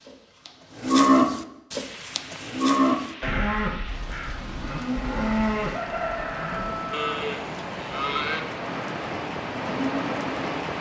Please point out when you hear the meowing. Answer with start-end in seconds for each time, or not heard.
not heard.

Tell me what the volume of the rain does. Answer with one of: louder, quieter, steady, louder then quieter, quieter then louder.
louder.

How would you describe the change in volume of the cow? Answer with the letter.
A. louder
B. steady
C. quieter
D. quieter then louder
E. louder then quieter
C.